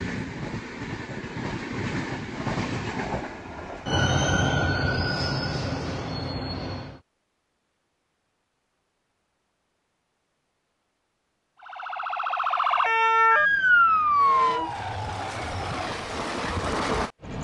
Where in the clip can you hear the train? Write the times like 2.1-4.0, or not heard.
0.0-7.0, 14.1-17.3.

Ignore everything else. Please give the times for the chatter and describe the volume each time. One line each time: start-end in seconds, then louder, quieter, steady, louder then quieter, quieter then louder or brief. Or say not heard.
not heard.